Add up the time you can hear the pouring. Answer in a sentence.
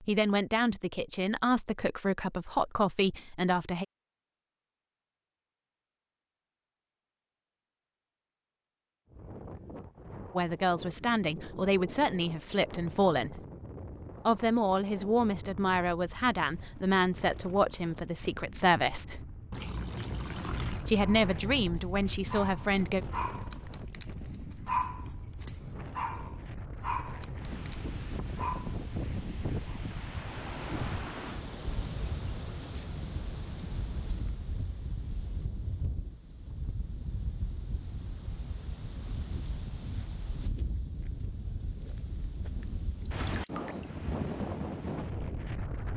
The pouring can be heard for 2 seconds in total.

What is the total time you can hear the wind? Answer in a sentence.
You can hear the wind for 37 seconds altogether.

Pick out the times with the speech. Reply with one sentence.
The speech can be heard from 0.0 to 3.9 s, from 10.3 to 13.4 s, from 14.2 to 19.2 s and from 20.9 to 23.1 s.